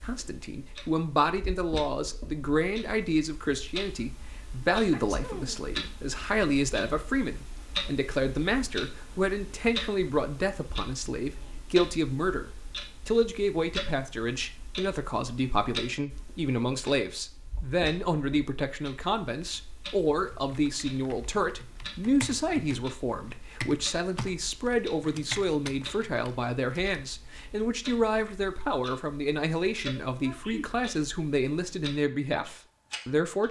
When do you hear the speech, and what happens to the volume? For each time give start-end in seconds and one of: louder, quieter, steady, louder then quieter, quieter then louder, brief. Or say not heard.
0.0-33.4 steady.